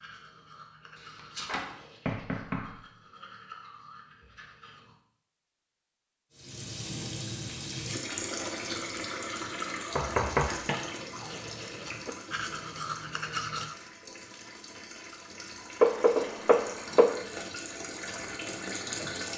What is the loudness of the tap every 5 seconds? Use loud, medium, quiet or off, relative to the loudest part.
off, loud, medium, loud.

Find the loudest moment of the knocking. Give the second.
16 s.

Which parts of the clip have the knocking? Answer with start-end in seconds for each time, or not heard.
0.9-2.8, 9.8-10.8, 15.8-17.1.